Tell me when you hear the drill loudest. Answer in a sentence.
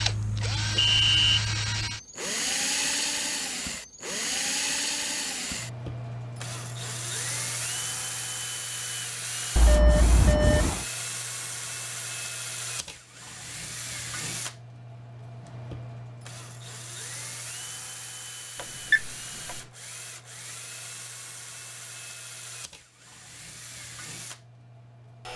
The loudest moment of the drill is at 3 seconds.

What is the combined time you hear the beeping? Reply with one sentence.
The beeping can be heard for 3 seconds in total.